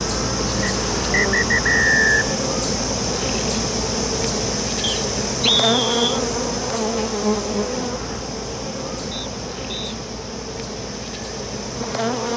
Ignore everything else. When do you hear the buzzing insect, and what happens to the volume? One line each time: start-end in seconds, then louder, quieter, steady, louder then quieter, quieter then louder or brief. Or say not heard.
0.0-12.3 quieter.